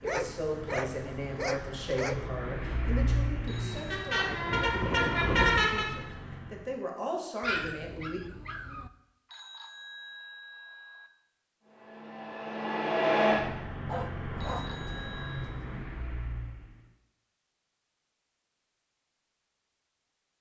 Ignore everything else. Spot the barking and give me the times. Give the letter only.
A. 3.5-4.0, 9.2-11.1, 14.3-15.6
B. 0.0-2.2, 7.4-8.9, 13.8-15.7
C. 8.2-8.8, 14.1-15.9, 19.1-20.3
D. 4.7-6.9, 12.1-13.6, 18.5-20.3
B.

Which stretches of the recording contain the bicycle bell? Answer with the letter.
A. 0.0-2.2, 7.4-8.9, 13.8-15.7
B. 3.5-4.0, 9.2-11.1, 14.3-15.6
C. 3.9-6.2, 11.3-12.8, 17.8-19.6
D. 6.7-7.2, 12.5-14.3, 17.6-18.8
B.